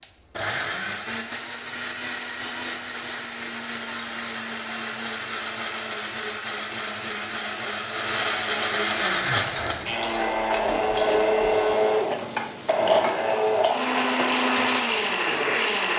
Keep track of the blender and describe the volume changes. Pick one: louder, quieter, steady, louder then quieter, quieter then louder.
louder.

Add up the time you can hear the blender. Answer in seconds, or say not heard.
16 s.